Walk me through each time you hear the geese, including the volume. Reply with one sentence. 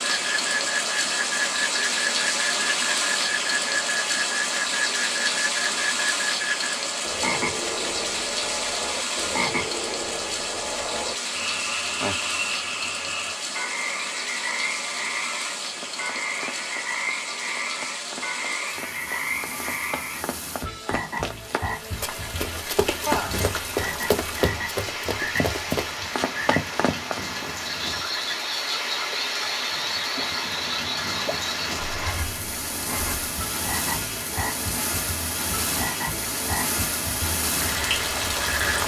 You can't hear the geese here.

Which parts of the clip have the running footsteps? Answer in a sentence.
You can hear the running footsteps from 15.8 to 27.2 s.